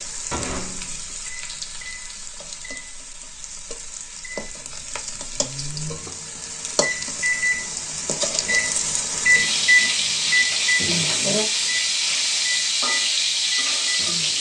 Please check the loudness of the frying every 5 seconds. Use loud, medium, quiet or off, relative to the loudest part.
quiet, medium, loud.